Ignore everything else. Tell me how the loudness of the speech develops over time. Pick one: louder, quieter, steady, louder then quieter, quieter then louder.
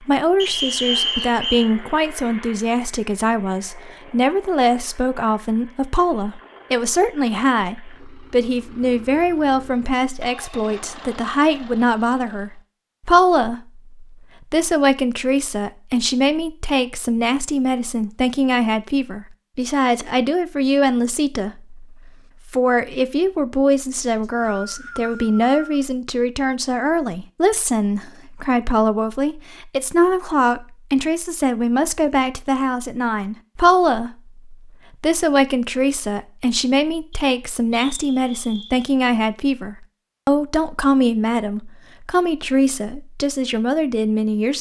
steady.